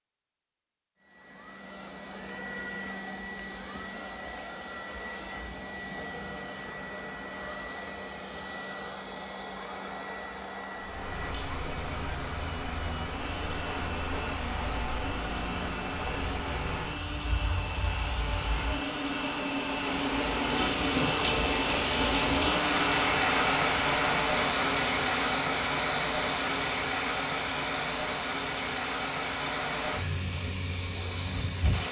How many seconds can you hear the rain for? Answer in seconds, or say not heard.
21 s.